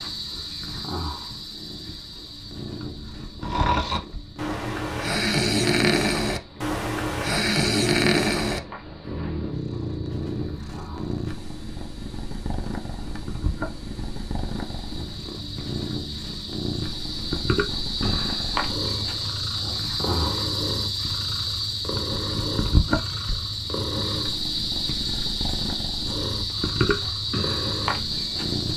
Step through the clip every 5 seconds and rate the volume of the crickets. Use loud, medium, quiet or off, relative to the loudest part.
medium, quiet, quiet, loud, loud, loud.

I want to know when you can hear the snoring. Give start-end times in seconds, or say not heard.
3.4-10.6.